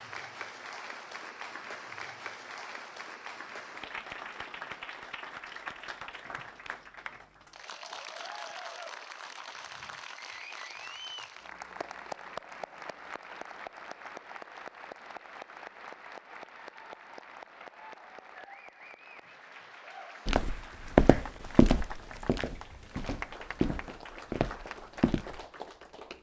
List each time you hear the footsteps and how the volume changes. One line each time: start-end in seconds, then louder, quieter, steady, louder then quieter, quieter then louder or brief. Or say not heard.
20.2-25.4 quieter then louder.